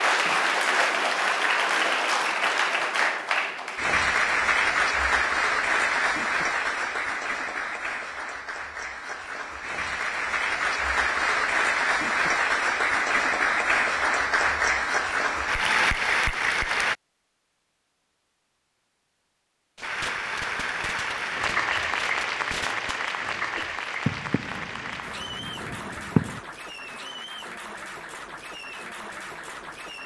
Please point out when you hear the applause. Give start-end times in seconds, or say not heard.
0.0-16.9, 19.8-30.0.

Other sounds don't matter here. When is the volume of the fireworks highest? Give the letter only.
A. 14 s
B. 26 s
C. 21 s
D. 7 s
B.